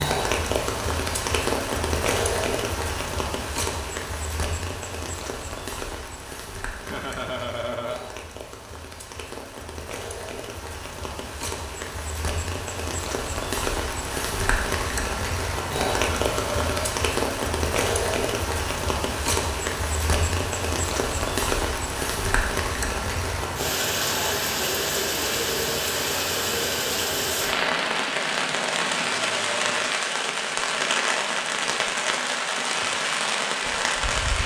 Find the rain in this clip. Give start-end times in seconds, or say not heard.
0.0-34.4.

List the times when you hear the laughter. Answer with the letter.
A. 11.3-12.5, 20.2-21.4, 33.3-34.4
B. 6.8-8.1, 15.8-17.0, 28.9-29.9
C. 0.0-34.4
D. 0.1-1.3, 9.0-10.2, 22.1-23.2
B.